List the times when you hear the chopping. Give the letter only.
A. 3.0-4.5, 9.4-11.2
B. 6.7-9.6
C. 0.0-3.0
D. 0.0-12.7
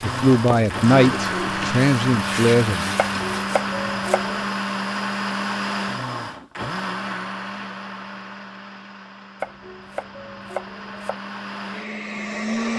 A.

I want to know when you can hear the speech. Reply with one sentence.
The speech can be heard from 0.0 to 3.0 s.